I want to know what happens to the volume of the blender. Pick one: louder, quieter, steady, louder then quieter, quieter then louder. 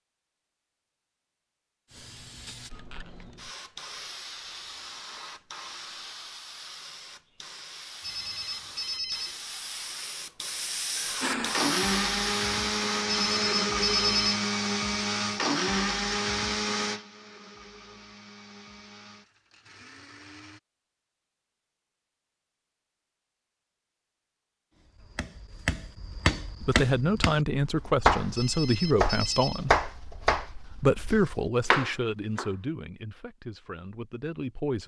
quieter.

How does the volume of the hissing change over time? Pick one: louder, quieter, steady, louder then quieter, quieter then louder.
louder.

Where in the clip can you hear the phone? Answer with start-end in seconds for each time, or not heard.
8.0-9.3, 13.1-14.4, 28.4-29.6.